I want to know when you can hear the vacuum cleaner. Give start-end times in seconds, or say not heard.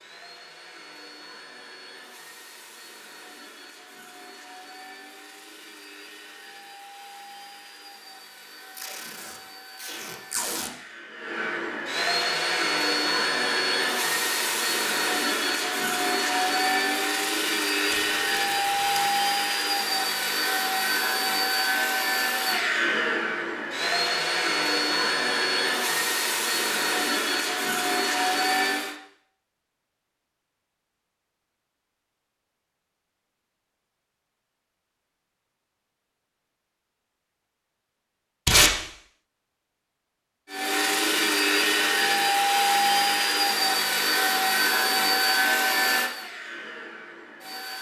0.0-28.9, 40.5-47.7.